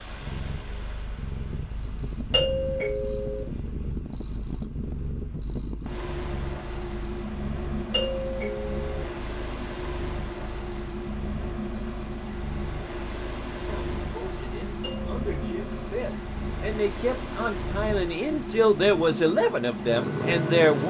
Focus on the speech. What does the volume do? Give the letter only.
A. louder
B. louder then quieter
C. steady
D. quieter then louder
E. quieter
A.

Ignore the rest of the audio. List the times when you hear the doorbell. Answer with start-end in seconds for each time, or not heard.
2.3-3.5, 7.9-9.1, 14.8-15.9.